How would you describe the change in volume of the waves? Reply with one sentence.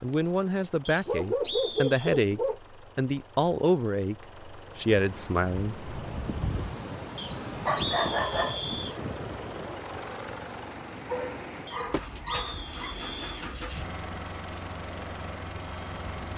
The volume of the waves goes down.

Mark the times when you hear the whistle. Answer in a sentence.
You can hear the whistle from 0.8 to 2.1 s, from 7.2 to 8.9 s and from 11.7 to 13.3 s.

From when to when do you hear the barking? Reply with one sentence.
The barking can be heard from 1.1 to 2.6 s, from 7.7 to 8.6 s and from 11.1 to 12.9 s.